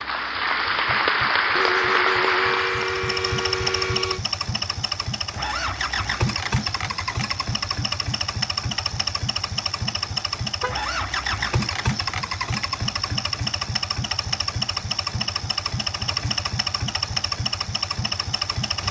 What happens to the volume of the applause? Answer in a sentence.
The loudness of the applause goes down.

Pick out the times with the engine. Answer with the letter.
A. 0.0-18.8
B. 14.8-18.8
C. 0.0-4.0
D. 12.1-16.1
A.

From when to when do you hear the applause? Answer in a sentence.
You can hear the applause from 0.0 to 4.0 s.